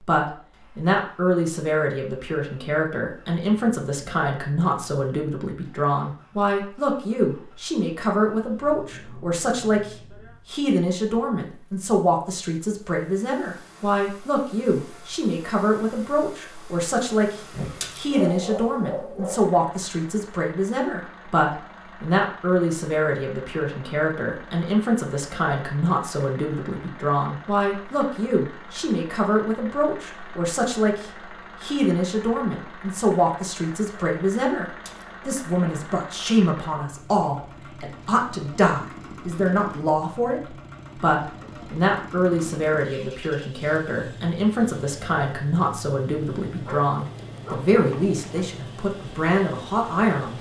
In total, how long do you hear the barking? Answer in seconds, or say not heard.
4 s.